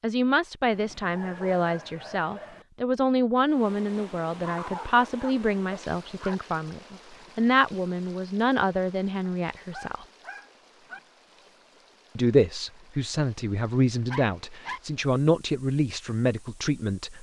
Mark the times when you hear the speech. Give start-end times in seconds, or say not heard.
0.0-10.1, 12.2-17.1.